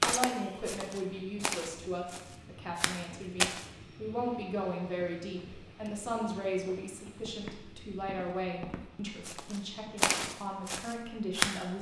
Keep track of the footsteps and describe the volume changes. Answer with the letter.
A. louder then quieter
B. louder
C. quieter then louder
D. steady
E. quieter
C.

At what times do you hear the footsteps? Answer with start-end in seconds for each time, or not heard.
0.0-3.6, 5.8-11.6.